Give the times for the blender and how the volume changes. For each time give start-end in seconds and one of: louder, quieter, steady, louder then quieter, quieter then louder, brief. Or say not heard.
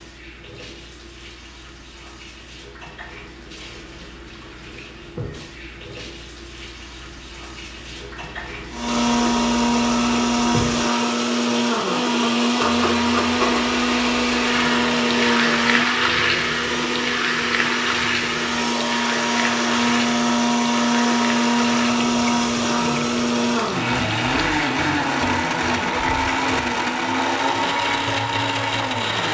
8.7-29.2 steady.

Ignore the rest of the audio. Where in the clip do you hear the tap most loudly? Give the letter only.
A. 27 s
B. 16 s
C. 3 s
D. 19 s
B.